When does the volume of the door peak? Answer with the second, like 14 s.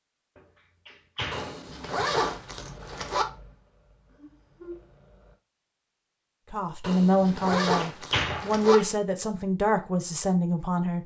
8 s.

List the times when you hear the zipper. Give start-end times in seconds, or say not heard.
1.3-3.2, 6.8-8.8.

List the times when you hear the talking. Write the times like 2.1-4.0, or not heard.
6.5-11.0.